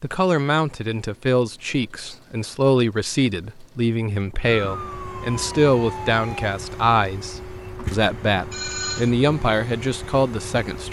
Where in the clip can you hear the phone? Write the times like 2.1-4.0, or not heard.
8.5-9.2.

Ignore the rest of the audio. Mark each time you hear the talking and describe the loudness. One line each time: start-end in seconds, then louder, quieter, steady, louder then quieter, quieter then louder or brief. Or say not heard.
0.0-10.8 steady.